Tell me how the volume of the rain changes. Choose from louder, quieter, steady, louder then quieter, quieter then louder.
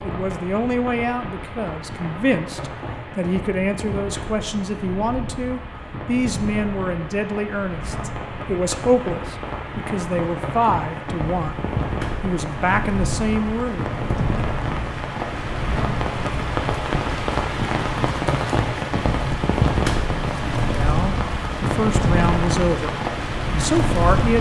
louder.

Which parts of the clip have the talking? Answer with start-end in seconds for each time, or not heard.
0.0-11.6, 12.2-13.9, 20.6-24.3.